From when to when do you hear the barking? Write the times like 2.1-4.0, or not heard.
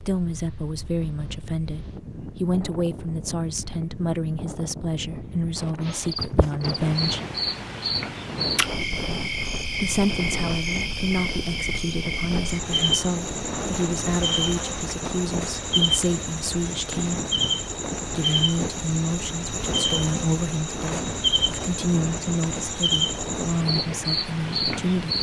not heard.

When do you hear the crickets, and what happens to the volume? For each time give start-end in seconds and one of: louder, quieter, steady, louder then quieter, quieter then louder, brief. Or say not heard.
5.8-25.1 steady.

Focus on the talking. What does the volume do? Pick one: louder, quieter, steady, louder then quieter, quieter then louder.
steady.